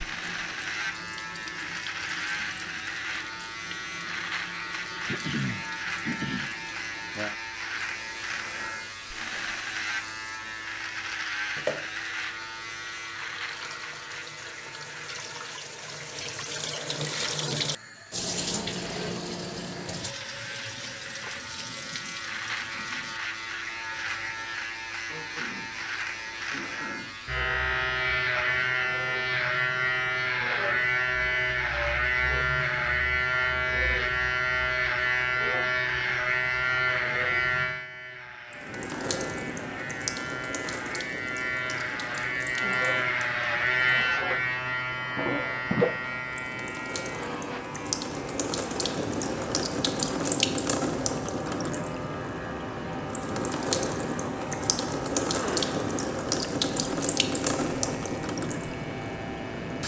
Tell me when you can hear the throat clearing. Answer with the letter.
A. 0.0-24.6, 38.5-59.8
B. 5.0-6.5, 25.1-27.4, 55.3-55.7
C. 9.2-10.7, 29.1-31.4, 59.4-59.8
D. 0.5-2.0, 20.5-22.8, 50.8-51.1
B.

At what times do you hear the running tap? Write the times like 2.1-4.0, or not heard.
0.0-24.6, 38.5-59.8.